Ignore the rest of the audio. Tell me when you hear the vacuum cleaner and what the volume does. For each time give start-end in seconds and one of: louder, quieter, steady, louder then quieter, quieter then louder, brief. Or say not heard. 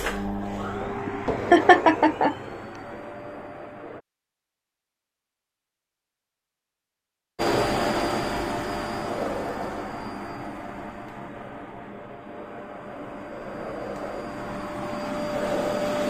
0.0-4.0 quieter
7.3-16.0 quieter then louder.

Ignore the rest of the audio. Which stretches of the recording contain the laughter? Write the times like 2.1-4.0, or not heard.
1.1-2.4.